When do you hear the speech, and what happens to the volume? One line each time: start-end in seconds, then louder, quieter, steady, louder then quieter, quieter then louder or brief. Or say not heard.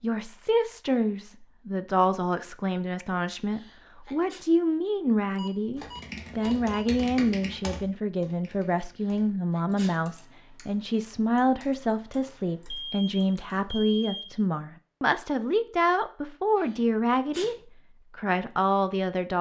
0.0-17.6 steady
18.1-19.3 brief.